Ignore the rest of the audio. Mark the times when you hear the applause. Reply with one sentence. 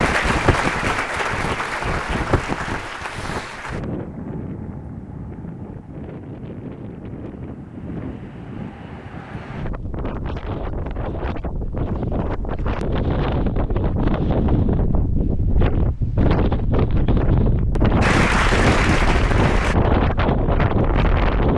The applause can be heard from 0.0 to 3.8 s and from 18.0 to 19.8 s.